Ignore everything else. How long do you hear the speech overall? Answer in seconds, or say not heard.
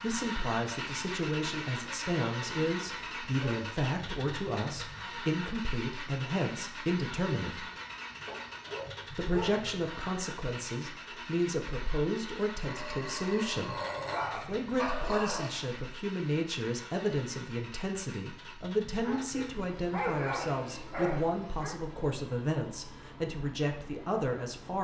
23 s.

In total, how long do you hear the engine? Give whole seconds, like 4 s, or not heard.
25 s.